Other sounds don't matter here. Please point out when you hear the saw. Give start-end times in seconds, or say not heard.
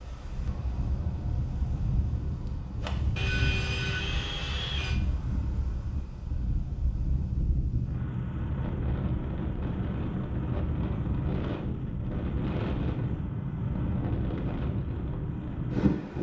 3.1-5.0.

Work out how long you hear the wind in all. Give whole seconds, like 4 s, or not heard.
16 s.